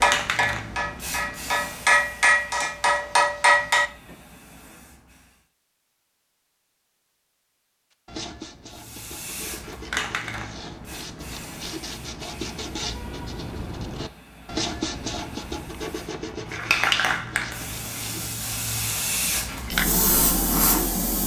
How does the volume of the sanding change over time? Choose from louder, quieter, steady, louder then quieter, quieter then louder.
louder then quieter.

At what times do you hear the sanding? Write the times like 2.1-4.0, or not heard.
8.1-18.3.